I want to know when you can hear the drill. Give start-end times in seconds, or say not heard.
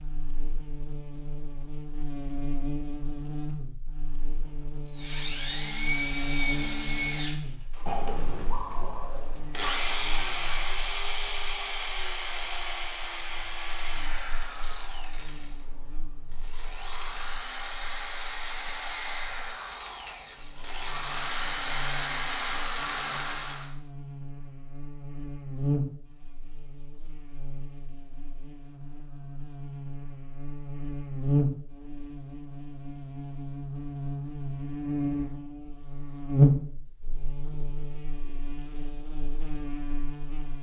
4.9-23.7.